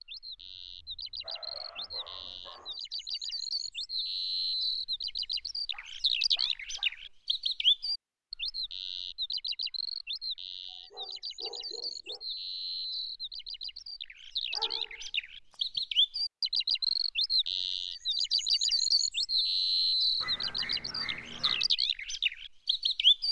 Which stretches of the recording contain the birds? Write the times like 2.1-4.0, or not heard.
0.0-23.2.